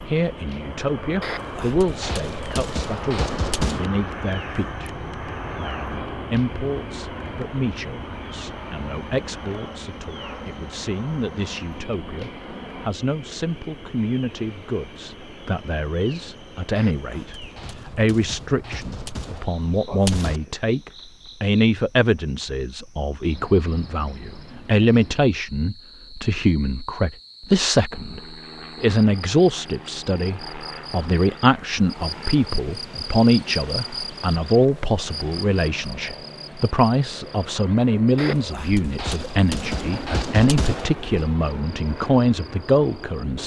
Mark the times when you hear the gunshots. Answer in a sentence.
You can hear the gunshots from 1.2 to 3.9 s, from 16.8 to 20.4 s and from 38.1 to 41.4 s.